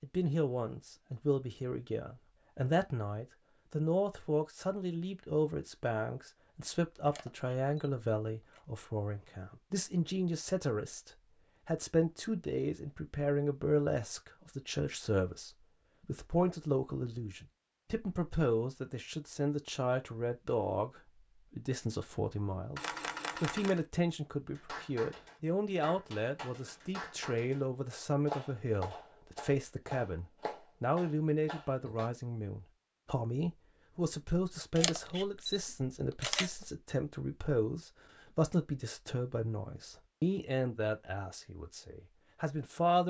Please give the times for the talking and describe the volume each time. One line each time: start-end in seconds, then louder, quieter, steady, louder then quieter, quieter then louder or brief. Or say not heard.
0.0-43.0 steady.